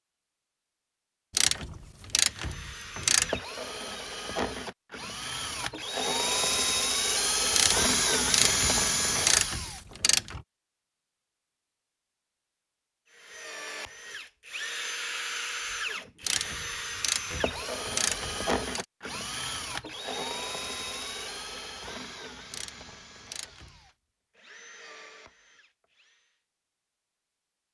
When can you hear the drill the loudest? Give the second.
8 s.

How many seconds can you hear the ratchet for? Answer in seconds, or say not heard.
9 s.